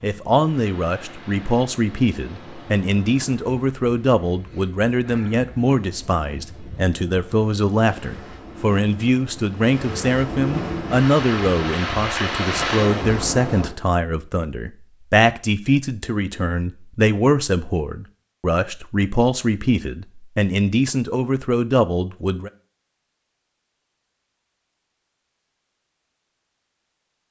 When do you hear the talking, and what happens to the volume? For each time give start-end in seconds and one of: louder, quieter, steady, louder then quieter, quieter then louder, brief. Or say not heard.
0.0-22.5 steady.